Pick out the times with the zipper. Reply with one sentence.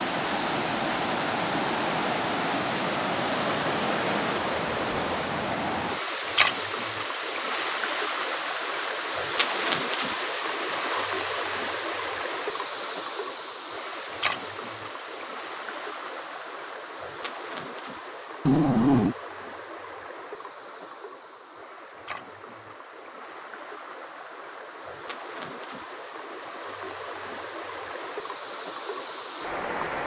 The zipper can be heard from 9.4 to 11.1 s and from 18.4 to 19.1 s.